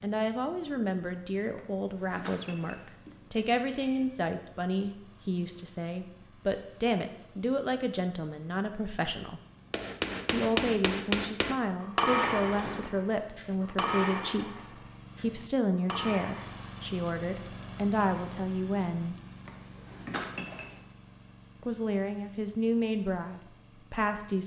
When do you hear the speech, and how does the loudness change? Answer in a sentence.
You can hear the speech from 0.0 to 9.4 s, at a steady volume; from 10.3 to 19.1 s, at a steady volume; and briefly from 21.6 to 24.4 s.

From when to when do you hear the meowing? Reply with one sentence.
The meowing can be heard from 1.6 to 4.2 s, from 12.3 to 12.9 s and from 19.4 to 20.9 s.